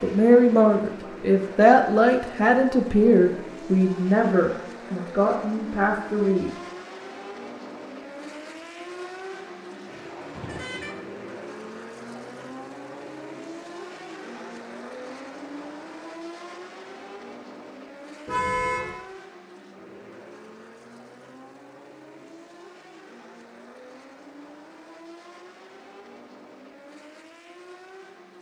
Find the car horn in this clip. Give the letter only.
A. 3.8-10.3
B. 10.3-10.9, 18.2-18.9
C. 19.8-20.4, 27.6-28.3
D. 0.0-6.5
B.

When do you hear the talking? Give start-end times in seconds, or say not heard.
0.0-6.5.